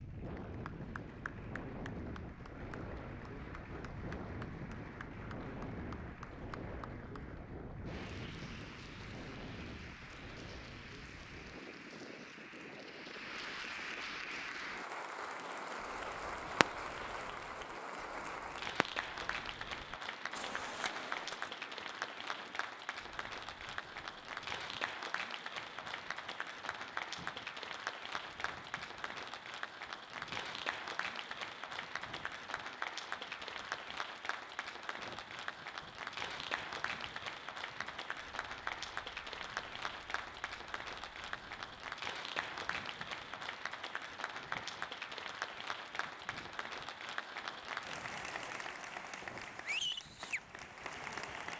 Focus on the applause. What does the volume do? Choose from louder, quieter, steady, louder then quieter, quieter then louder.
louder.